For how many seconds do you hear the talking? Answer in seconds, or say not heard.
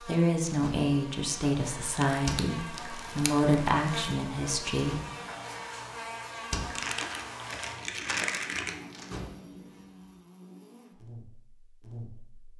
5 s.